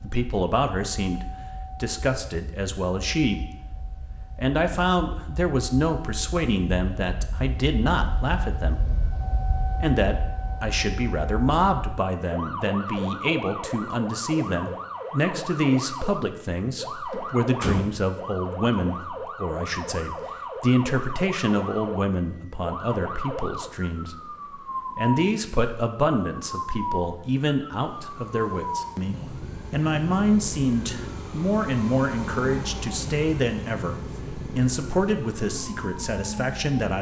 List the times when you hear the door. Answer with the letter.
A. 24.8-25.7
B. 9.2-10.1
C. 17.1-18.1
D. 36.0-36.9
C.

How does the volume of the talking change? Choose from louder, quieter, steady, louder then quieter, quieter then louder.
steady.